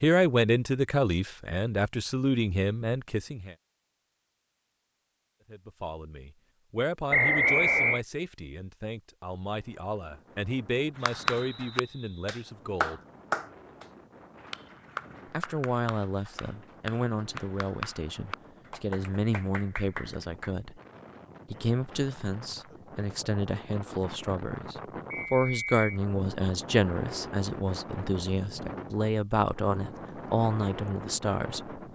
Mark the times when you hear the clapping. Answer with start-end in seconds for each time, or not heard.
10.9-20.5.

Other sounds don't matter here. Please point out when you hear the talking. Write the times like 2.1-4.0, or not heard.
0.0-3.5, 5.5-13.0, 15.3-20.8, 21.5-31.8.